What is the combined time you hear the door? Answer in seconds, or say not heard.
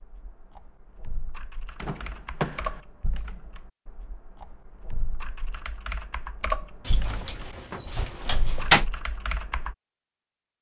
3 s.